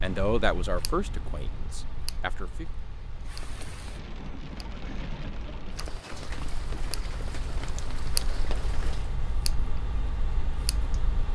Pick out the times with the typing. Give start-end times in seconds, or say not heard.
not heard.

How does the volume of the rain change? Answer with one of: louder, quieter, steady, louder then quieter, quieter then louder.
louder.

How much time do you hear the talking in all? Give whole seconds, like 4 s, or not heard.
3 s.